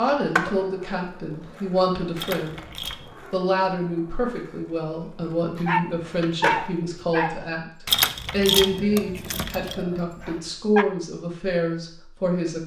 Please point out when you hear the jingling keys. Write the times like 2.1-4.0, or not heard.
2.1-3.1, 7.8-9.8.